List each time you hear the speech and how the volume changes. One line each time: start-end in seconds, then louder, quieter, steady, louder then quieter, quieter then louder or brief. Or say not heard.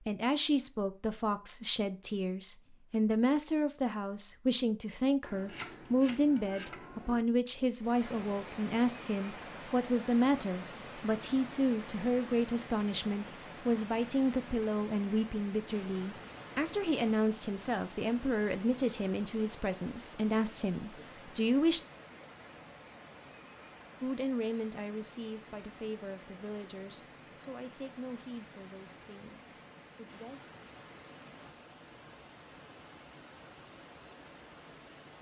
0.1-21.8 steady
24.0-30.4 quieter.